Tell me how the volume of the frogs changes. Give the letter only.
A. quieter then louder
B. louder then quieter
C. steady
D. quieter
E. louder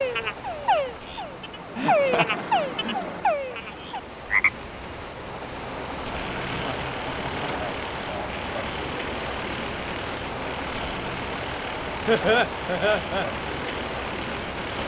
D.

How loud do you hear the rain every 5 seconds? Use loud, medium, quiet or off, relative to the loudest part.
medium, loud, loud.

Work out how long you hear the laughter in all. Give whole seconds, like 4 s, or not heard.
4 s.